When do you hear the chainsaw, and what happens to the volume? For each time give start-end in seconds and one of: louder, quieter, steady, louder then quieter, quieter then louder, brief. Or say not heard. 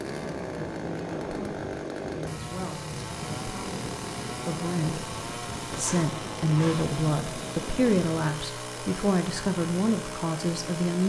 0.0-11.0 steady.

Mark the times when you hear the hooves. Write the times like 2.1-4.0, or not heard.
not heard.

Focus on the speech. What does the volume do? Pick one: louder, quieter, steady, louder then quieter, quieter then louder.
louder.